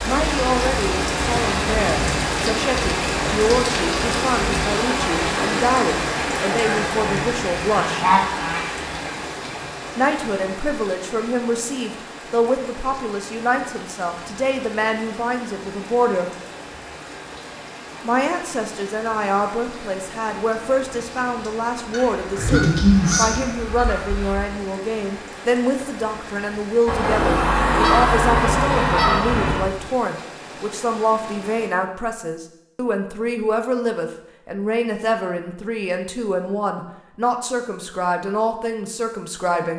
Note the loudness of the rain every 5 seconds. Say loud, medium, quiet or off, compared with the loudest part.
loud, loud, quiet, quiet, quiet, quiet, quiet, off.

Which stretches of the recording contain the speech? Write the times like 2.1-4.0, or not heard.
0.1-8.1, 9.9-16.3, 18.0-39.7.